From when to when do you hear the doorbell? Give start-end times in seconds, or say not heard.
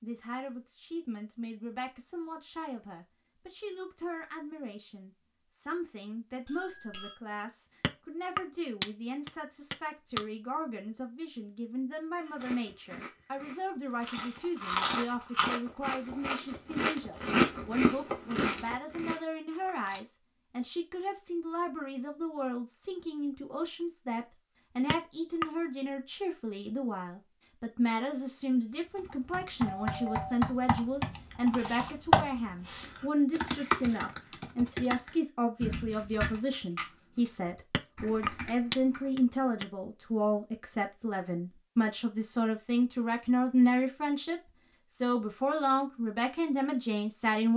6.5-7.2, 29.8-30.4.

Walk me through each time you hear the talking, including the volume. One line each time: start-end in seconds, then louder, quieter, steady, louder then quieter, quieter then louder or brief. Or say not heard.
0.0-47.5 louder.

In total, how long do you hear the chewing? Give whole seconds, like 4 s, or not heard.
8 s.